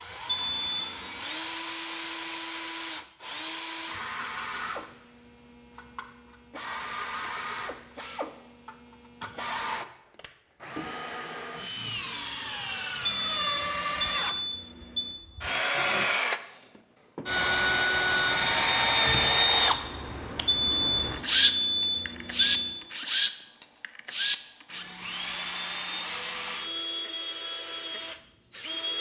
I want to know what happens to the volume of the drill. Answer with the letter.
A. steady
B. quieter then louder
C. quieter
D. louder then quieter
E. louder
D.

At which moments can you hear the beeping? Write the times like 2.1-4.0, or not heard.
0.2-1.3, 13.1-15.2, 20.4-22.8.